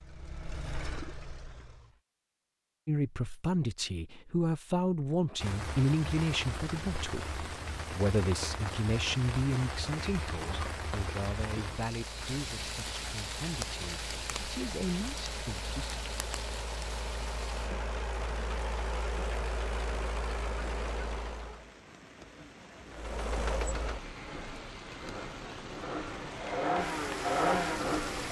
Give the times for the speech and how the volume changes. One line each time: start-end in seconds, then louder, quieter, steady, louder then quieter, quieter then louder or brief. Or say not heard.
2.9-16.0 quieter.